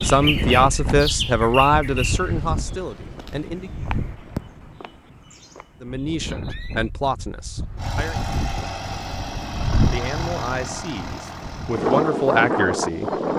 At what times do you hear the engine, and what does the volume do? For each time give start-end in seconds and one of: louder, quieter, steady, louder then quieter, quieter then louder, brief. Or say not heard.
7.8-13.3 quieter.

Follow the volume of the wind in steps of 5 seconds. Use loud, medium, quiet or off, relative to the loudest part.
medium, medium, loud.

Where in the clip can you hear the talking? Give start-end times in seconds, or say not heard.
0.0-3.7, 5.8-8.2, 9.9-13.1.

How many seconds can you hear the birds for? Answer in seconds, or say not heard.
7 s.